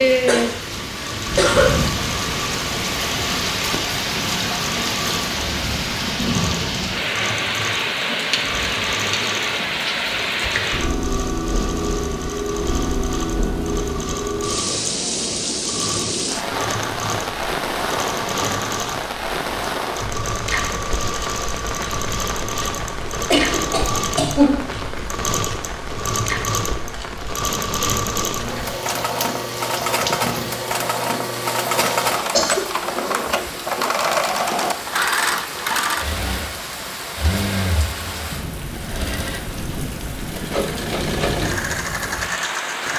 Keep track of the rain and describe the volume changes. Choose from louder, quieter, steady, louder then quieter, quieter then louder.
quieter.